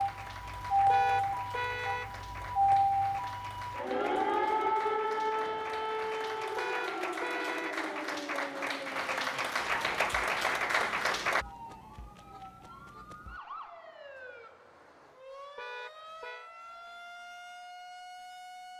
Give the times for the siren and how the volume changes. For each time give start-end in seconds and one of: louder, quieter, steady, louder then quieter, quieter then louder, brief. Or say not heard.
0.0-18.7 quieter.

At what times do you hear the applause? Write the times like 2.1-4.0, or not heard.
0.0-11.4.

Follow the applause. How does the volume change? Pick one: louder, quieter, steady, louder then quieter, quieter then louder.
louder.